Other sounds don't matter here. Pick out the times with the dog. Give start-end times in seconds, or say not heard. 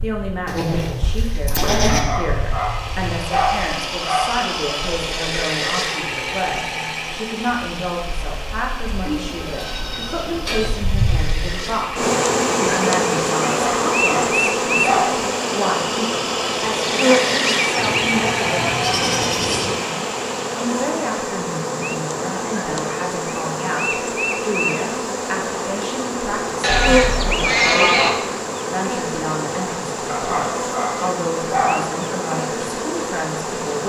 1.9-4.5, 13.5-15.2, 30.1-31.9.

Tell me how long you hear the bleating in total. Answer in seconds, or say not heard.
7 s.